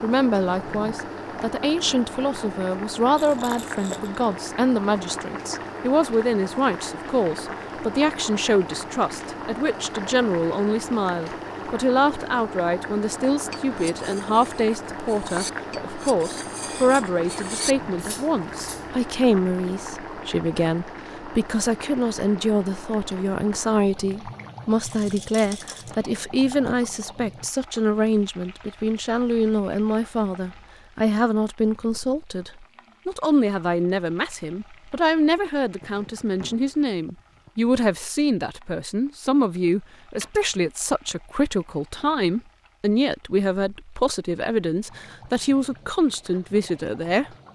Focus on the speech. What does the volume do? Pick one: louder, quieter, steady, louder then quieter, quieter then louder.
steady.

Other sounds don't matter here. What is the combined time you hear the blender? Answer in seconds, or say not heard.
not heard.